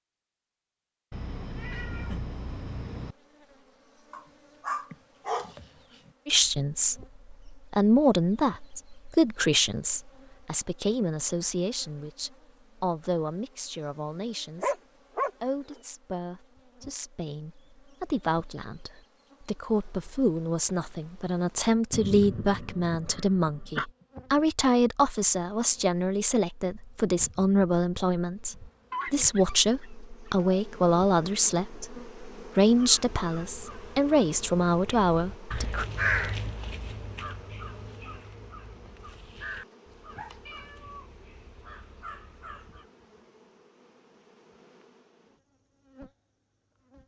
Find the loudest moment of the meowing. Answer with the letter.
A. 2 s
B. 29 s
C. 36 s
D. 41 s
A.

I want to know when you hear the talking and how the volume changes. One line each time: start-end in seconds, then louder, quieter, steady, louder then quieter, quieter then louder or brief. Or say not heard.
6.2-14.8 quieter
15.4-35.9 louder.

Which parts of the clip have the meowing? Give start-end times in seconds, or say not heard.
1.1-3.1, 40.5-41.2.